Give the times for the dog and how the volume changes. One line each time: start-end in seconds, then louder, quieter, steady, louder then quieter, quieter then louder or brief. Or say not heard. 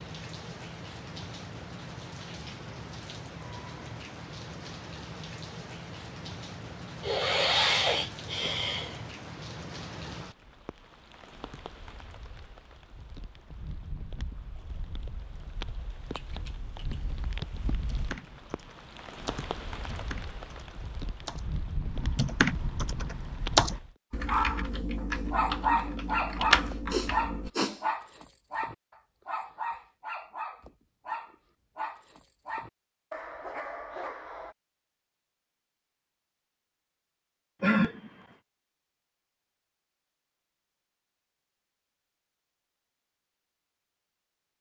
24.2-34.5 quieter.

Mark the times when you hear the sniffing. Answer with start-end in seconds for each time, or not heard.
7.0-9.0, 26.9-27.8, 37.6-38.1.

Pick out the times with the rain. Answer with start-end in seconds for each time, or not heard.
0.0-23.9.